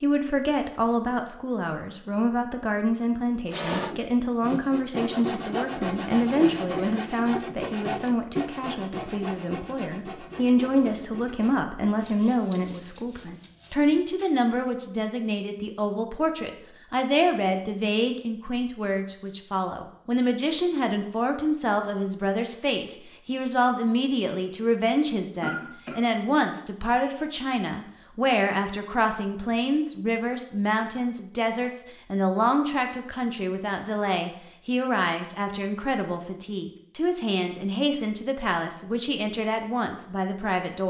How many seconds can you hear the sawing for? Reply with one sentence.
You can hear the sawing for 11 seconds altogether.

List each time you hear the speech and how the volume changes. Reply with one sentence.
The speech can be heard from 0.0 to 40.8 s, at a steady volume.